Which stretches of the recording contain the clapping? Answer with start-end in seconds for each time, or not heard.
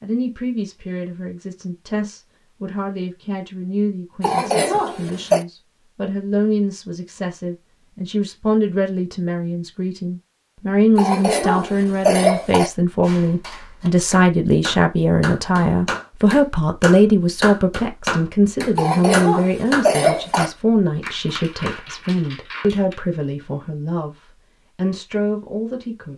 13.0-22.9.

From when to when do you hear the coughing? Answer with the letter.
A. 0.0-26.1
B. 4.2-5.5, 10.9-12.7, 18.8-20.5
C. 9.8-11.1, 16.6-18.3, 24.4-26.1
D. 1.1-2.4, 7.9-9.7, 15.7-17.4
B.